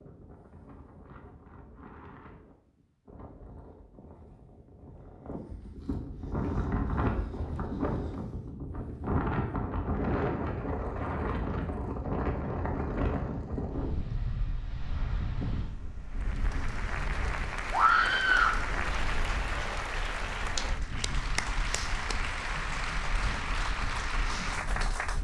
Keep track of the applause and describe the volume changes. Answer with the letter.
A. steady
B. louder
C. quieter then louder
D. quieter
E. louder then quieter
A.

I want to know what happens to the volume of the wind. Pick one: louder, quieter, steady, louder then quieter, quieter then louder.
louder then quieter.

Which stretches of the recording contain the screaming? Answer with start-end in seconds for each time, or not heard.
17.7-18.6.